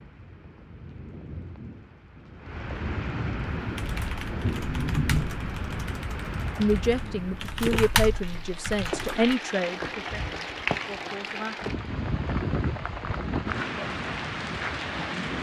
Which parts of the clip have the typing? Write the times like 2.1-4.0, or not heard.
3.6-9.3.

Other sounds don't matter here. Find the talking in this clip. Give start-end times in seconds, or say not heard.
6.5-11.6.